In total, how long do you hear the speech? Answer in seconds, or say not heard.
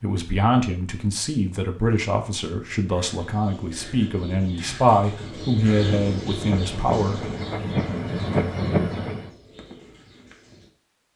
7 s.